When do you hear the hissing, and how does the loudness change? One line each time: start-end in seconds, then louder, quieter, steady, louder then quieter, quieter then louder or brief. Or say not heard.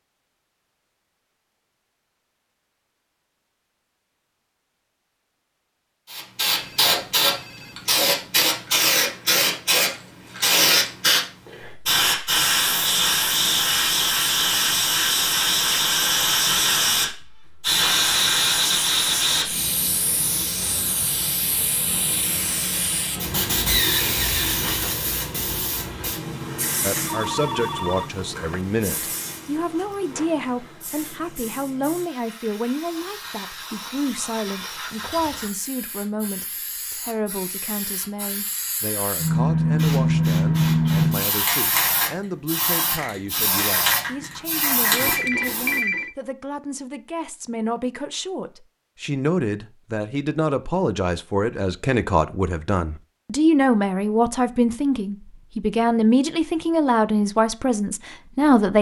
6.1-45.8 quieter then louder.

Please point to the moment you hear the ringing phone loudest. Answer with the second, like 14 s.
46 s.